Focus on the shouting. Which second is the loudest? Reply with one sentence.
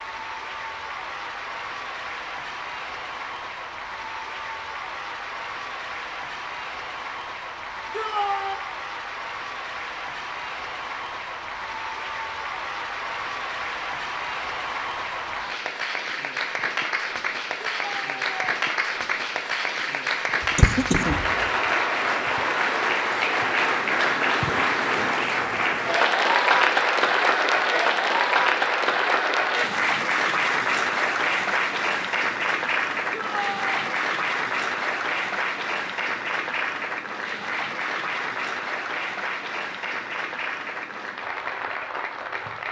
The volume of the shouting peaks at 8 seconds.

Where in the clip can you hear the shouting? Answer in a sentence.
You can hear the shouting from 7.9 to 8.6 s, from 17.6 to 18.4 s and from 33.1 to 33.9 s.